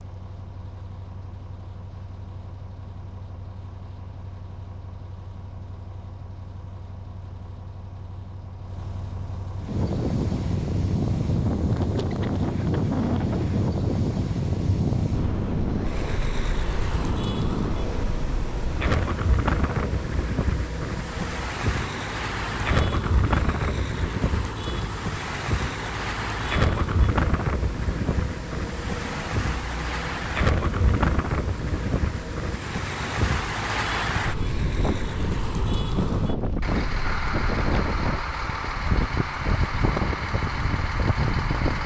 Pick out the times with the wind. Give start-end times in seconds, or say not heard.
9.6-41.8.